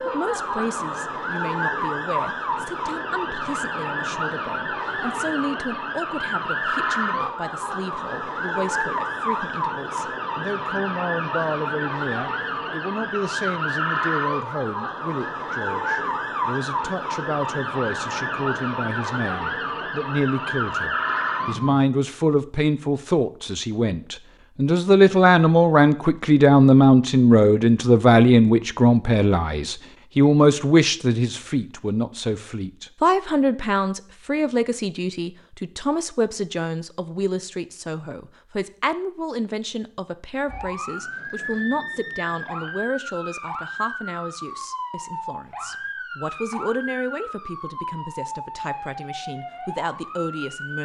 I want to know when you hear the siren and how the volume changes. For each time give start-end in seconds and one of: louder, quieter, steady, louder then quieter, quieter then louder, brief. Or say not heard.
0.0-21.8 steady
40.5-50.7 steady.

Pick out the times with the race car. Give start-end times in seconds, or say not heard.
not heard.